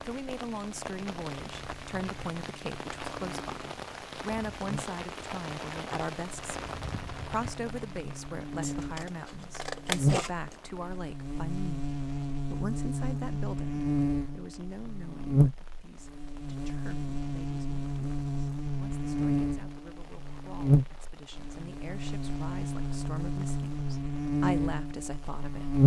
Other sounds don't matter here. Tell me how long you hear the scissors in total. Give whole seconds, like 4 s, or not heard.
2 s.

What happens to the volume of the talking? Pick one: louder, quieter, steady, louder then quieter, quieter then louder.
quieter then louder.